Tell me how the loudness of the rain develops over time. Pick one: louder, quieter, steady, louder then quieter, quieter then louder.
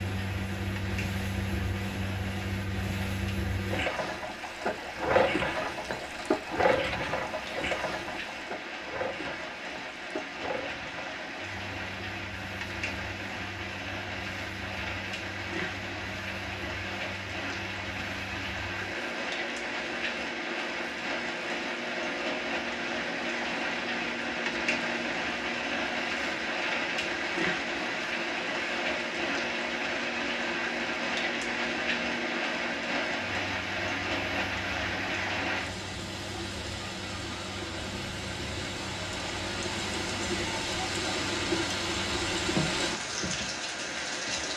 louder.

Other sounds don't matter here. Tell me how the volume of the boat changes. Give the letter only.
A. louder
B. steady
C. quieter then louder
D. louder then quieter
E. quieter
E.